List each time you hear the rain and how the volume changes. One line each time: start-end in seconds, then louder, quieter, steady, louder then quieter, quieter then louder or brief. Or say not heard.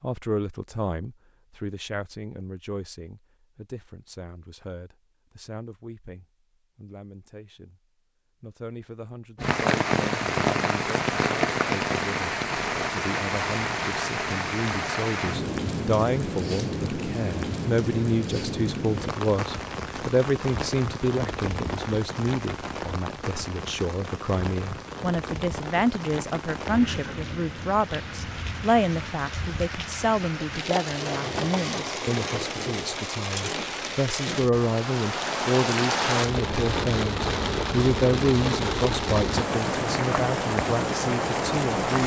9.3-42.0 quieter then louder.